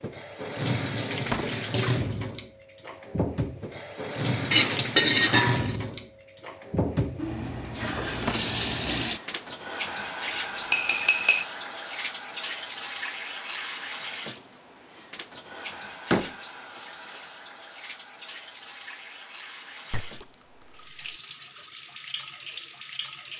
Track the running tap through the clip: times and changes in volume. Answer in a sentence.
You can hear the running tap from 0.0 to 23.3 s, getting quieter.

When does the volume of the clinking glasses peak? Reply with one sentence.
The volume of the clinking glasses peaks at 5 seconds.